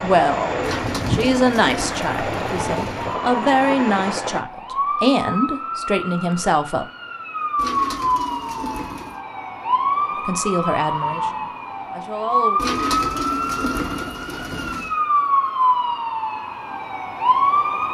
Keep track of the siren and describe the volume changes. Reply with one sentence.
The volume of the siren goes up.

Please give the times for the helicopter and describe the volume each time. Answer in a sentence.
You can hear the helicopter from 0.0 to 4.5 s, at a steady volume.